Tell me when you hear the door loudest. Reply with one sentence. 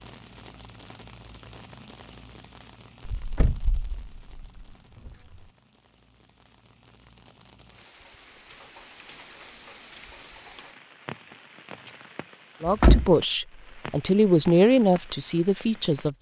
The loudest moment of the door is at 13 seconds.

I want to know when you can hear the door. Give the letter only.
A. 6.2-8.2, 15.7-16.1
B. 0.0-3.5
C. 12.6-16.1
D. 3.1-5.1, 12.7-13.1
D.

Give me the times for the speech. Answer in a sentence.
The speech can be heard from 12.6 to 16.1 s.